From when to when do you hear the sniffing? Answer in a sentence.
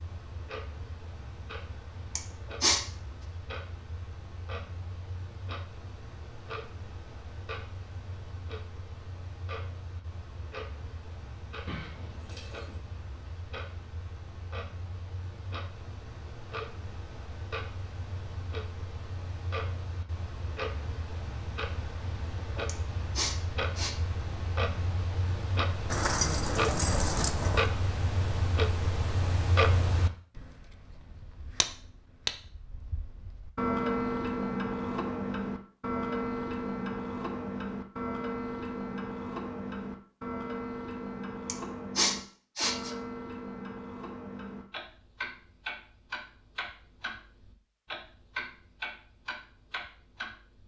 The sniffing can be heard from 2.1 to 2.9 s, from 22.6 to 23.9 s and from 41.5 to 42.9 s.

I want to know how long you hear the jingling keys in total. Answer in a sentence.
You can hear the jingling keys for 3 seconds altogether.